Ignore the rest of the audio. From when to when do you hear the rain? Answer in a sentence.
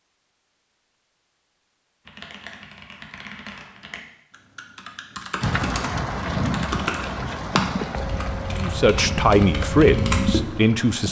You can hear the rain from 5.4 to 11.0 s.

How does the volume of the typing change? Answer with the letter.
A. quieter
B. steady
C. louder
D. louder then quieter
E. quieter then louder
C.